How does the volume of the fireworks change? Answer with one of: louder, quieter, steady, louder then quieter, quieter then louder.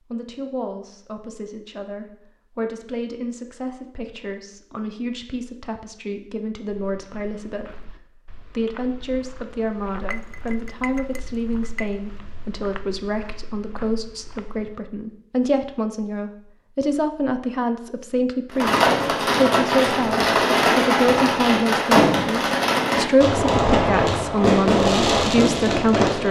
steady.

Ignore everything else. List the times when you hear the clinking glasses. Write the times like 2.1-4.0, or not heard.
10.1-11.9.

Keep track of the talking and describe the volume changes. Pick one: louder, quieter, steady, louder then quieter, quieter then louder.
louder.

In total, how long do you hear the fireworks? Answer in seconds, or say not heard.
8 s.